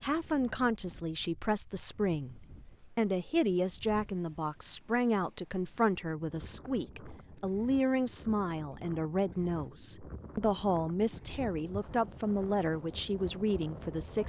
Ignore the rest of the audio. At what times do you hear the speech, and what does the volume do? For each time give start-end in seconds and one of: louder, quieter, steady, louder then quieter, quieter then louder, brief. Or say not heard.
0.0-14.2 steady.